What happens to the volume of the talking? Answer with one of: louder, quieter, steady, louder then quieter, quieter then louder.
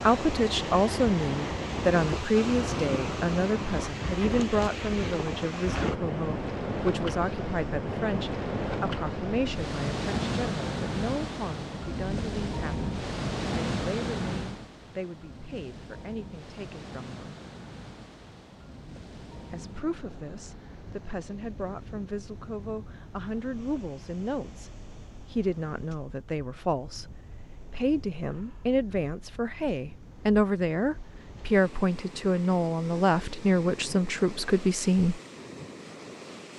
quieter then louder.